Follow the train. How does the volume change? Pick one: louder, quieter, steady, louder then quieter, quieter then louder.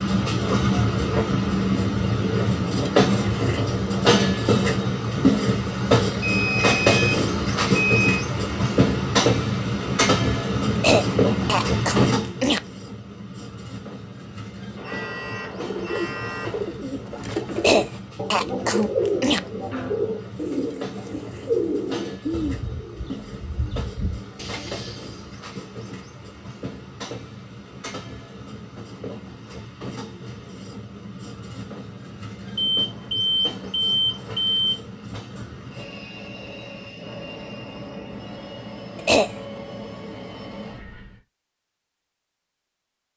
quieter.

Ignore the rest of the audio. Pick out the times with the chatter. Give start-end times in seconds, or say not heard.
not heard.